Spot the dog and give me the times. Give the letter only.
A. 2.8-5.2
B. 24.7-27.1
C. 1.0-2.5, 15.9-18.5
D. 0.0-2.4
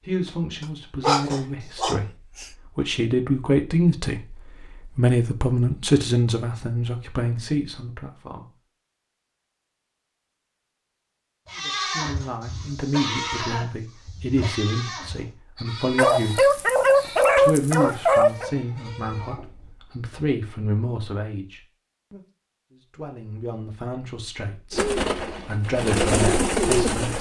C.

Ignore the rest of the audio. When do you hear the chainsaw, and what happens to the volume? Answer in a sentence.
The chainsaw can't be heard in this clip.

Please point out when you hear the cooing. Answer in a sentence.
You can hear the cooing from 24.7 to 27.1 s.